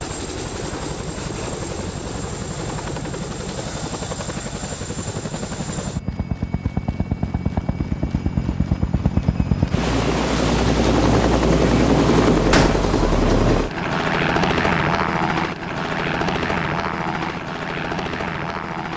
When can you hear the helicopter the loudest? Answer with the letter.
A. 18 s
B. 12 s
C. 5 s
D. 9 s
B.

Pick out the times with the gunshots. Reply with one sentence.
You can hear the gunshots from 12.5 to 12.9 s.